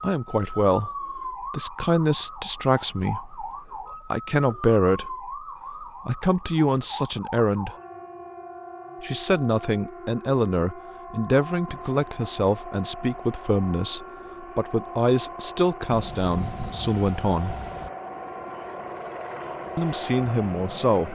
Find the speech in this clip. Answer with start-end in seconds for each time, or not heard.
0.0-3.4, 4.1-7.7, 9.0-17.6, 19.8-21.0.